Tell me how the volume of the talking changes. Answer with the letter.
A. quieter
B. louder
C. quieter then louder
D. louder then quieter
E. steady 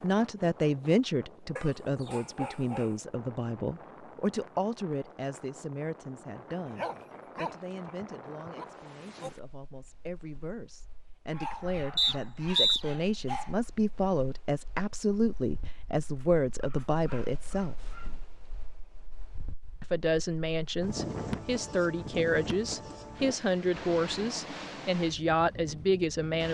C.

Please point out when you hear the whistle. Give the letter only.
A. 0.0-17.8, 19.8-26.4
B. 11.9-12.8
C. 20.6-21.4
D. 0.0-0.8
B.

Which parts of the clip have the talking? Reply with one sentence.
The talking can be heard from 0.0 to 17.8 s and from 19.8 to 26.4 s.